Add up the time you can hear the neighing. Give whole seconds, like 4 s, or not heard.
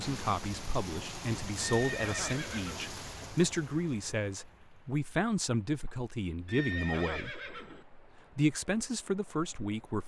3 s.